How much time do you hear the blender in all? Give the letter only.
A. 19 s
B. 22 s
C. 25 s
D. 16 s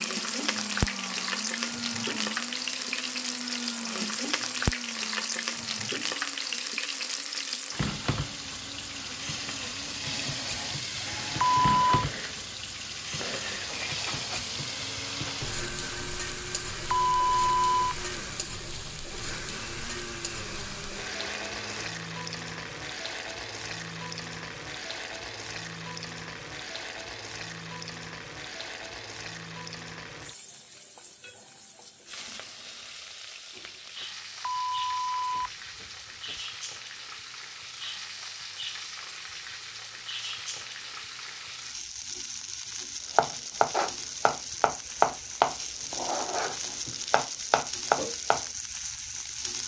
B.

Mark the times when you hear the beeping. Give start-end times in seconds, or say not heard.
11.4-12.1, 16.9-17.9, 34.4-36.4.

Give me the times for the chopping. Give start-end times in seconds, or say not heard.
43.1-48.5.